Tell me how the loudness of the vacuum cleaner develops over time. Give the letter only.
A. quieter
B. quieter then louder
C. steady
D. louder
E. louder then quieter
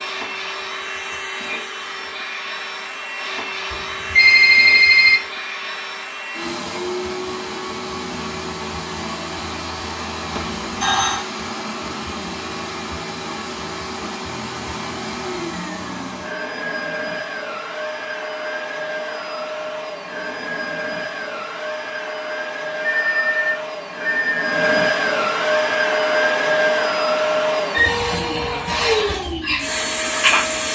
D.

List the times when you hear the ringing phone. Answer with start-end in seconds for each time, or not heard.
3.7-5.2, 10.3-11.2, 22.8-24.5.